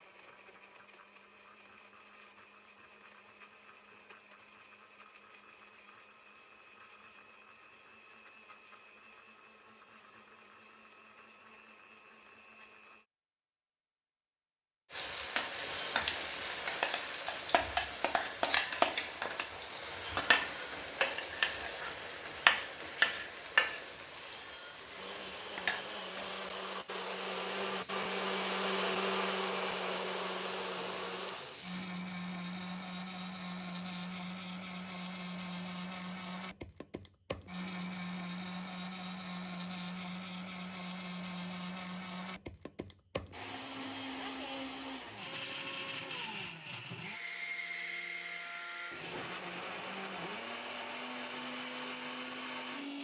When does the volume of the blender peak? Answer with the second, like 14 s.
29 s.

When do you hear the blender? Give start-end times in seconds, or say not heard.
0.0-13.1, 24.9-52.9.